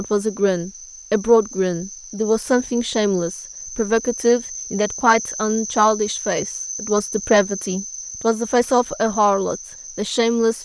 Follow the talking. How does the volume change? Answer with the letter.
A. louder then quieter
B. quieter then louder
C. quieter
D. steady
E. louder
D.